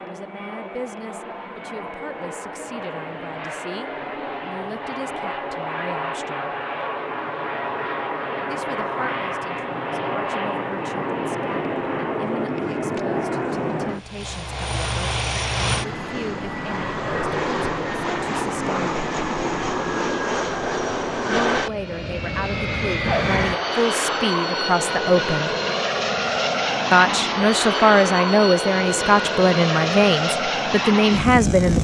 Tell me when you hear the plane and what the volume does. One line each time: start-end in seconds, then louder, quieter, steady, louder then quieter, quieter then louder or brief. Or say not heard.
0.0-31.8 louder.